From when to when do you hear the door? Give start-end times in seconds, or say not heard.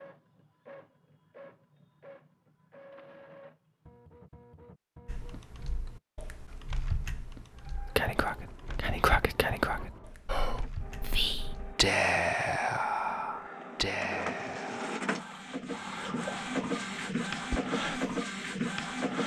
not heard.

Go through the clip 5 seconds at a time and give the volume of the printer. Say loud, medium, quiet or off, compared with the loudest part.
quiet, quiet, medium, loud.